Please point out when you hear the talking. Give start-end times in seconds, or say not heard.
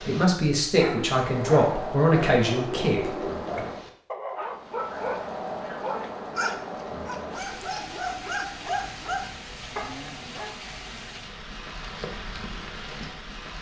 0.1-3.2.